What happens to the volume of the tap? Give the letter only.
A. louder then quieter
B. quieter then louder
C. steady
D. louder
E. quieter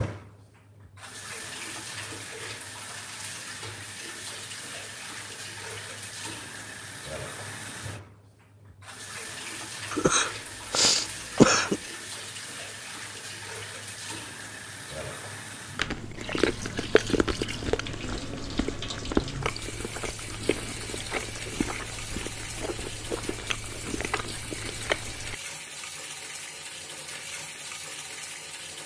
C.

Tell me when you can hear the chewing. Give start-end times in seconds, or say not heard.
15.8-25.4.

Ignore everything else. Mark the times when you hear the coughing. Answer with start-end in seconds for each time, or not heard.
9.9-11.8.